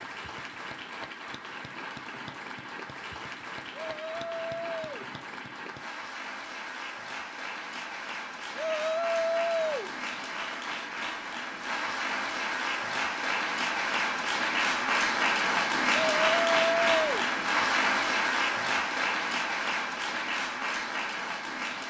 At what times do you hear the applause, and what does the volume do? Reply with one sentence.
The applause can be heard from 0.0 to 21.8 s, getting louder.